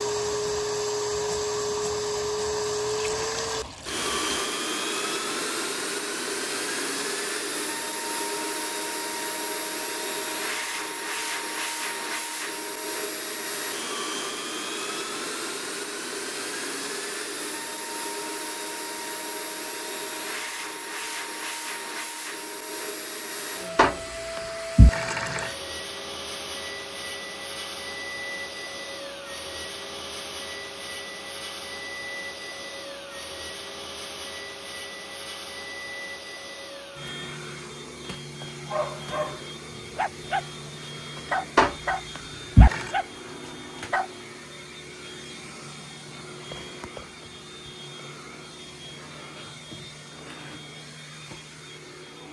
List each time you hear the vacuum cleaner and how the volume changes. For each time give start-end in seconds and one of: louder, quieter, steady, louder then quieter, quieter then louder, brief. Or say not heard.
0.0-52.2 quieter.